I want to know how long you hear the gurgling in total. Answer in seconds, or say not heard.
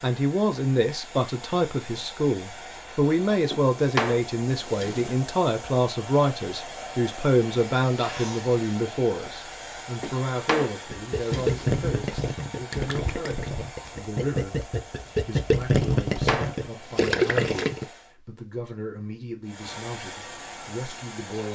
7 s.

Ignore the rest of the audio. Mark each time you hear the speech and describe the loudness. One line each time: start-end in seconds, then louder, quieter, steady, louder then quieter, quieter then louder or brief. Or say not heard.
0.0-21.4 quieter.